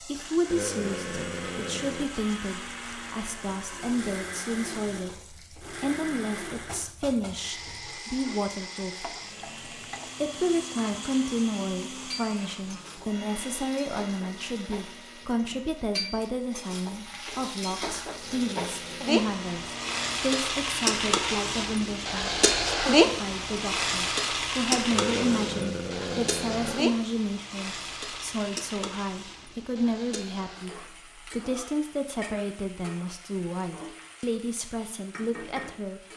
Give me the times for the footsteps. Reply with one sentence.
You can't hear the footsteps here.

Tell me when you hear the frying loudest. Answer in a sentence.
The volume of the frying peaks at 23 seconds.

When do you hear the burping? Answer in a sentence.
The burping can be heard from 0.5 to 2.1 s, from 18.2 to 19.1 s and from 24.9 to 26.9 s.